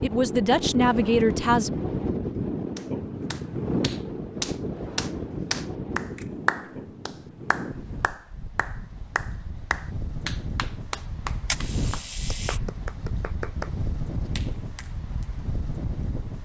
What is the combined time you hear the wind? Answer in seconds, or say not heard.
16 s.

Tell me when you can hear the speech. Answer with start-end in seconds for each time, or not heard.
0.0-1.7.